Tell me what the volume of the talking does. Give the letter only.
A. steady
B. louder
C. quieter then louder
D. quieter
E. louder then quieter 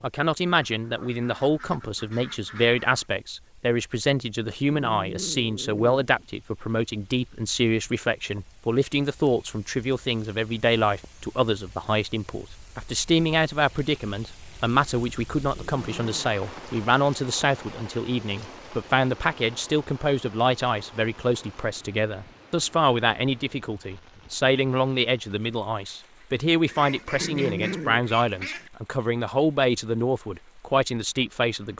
A.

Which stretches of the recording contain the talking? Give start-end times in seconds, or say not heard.
0.0-31.7.